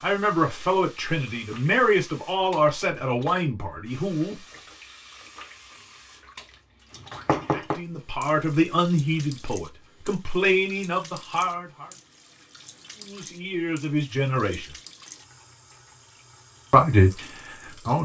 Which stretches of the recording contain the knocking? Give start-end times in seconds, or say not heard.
6.9-7.8.